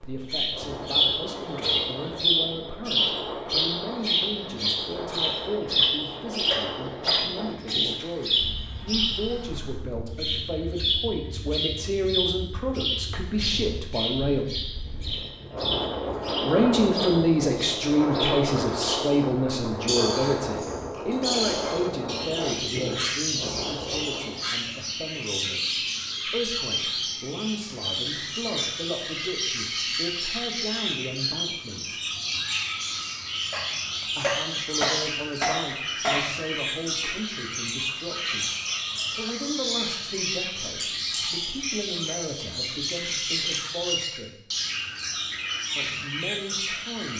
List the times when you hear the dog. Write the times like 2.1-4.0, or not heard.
5.8-7.8, 33.5-36.2.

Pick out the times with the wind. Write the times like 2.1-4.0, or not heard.
0.0-24.5.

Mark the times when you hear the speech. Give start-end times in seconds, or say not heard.
0.1-14.5, 16.4-32.0, 34.1-38.5, 39.1-44.4, 45.8-47.1.